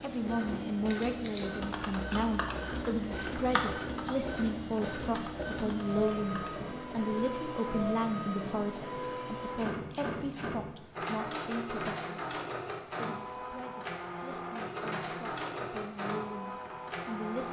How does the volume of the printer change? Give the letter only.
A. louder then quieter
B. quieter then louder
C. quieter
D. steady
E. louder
D.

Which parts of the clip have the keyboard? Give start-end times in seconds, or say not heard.
1.6-6.7.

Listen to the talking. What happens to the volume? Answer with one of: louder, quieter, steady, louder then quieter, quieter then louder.
quieter.